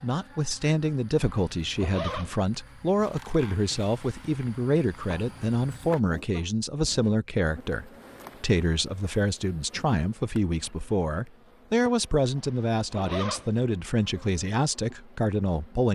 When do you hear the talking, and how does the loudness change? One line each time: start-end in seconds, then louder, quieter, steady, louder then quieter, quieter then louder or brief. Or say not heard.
0.0-15.9 steady.